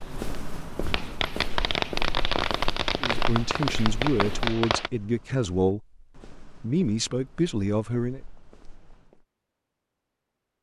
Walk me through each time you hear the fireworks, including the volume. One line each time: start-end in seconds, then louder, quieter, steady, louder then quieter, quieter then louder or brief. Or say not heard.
0.0-4.9 louder.